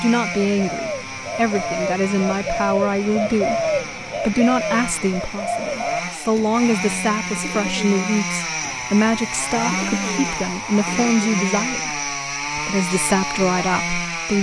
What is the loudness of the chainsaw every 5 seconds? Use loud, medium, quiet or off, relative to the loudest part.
medium, loud, loud.